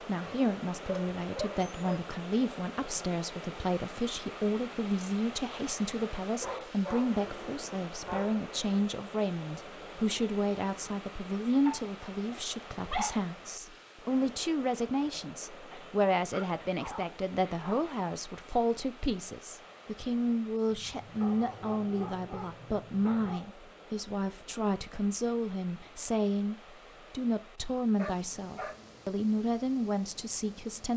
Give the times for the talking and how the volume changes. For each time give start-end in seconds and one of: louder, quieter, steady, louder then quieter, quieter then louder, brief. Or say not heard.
0.1-30.9 steady.